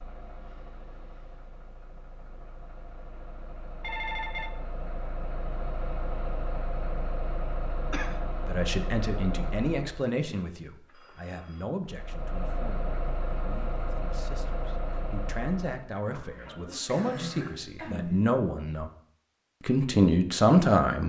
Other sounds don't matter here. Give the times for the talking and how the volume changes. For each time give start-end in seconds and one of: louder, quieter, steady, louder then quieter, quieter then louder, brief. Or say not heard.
8.4-18.9 quieter then louder
19.6-21.0 brief.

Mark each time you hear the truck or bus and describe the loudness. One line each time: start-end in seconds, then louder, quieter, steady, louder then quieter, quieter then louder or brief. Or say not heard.
0.0-10.1 louder
11.8-15.9 steady.